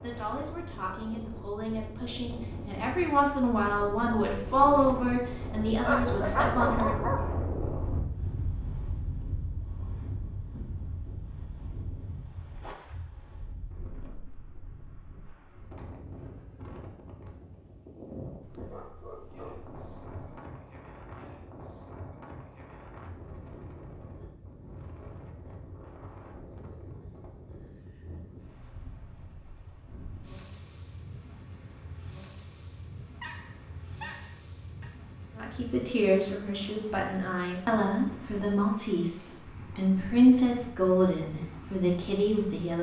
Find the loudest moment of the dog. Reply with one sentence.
The loudest moment of the dog is at 7 seconds.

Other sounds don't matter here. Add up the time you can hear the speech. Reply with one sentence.
You can hear the speech for 14 seconds altogether.